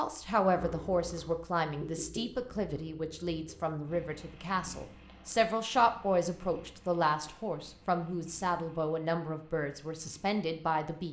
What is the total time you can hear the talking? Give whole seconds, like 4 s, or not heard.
11 s.